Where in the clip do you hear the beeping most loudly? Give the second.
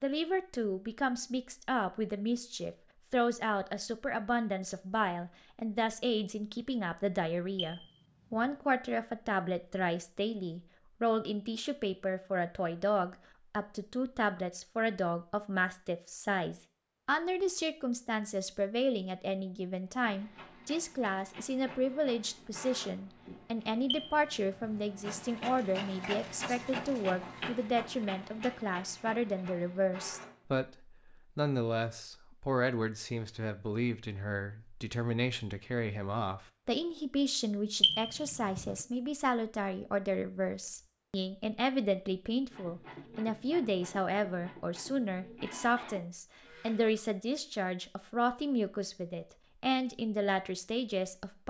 38 s.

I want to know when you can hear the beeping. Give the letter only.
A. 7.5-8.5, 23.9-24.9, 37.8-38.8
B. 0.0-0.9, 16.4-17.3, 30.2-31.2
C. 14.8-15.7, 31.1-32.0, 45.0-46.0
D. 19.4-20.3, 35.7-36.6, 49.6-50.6
A.